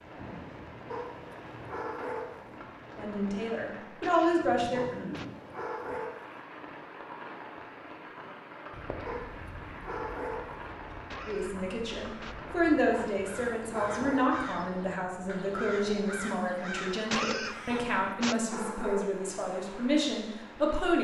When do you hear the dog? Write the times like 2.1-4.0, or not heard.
0.9-2.5, 4.8-6.4, 9.1-10.7, 12.9-14.3, 17.7-19.3.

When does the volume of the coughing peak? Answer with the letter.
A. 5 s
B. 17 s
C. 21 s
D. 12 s
B.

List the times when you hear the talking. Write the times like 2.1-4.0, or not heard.
3.0-4.8, 11.2-21.0.